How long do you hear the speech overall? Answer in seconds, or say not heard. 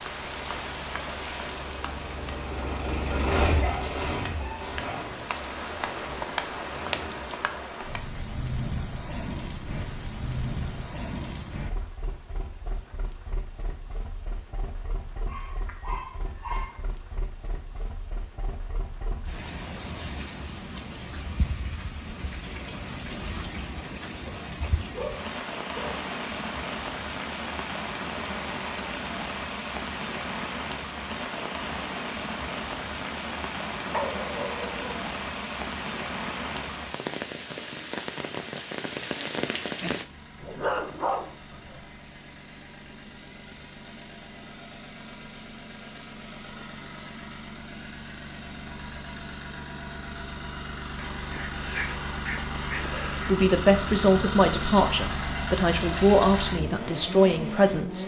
5 s.